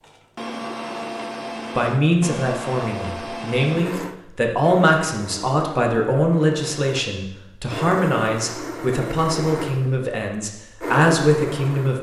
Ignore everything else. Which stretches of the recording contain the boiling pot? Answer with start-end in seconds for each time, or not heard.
not heard.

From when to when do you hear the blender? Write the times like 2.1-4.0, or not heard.
0.0-11.9.